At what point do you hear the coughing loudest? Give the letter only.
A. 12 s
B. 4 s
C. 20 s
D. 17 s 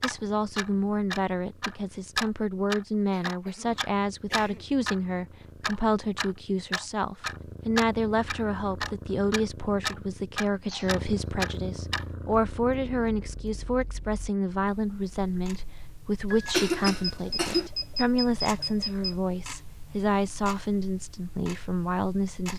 D.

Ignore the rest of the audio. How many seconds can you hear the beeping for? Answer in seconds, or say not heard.
2 s.